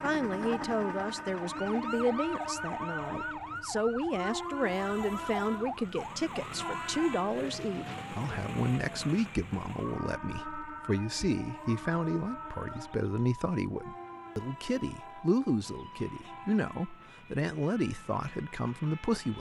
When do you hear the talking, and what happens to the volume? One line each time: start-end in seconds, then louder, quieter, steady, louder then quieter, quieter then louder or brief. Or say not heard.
0.0-19.3 steady.